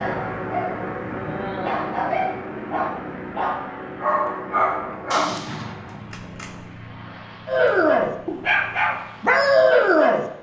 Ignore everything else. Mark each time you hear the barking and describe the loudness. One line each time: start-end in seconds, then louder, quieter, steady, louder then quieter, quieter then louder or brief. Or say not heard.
0.0-5.3 louder
7.5-10.2 brief.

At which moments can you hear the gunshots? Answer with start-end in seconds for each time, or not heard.
5.1-6.5.